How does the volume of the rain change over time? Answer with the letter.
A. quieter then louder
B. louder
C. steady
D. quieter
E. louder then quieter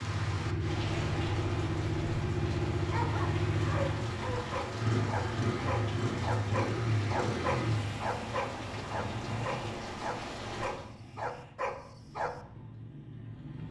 C.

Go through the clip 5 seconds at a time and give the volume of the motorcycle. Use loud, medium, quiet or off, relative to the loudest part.
loud, loud, quiet.